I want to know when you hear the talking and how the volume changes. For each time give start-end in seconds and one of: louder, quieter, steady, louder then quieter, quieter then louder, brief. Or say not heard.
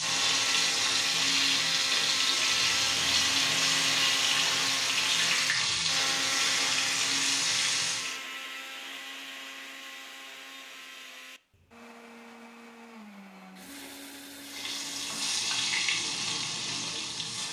not heard.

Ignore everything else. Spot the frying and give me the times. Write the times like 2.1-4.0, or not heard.
0.0-8.2, 14.4-17.4.